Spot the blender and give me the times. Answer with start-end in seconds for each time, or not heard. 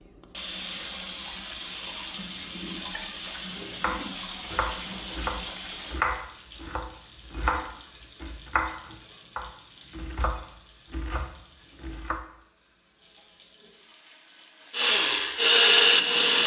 14.7-16.4.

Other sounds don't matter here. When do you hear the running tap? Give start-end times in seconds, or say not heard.
0.0-16.4.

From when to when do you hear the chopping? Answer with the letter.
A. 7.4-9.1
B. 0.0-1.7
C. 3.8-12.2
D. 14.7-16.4
C.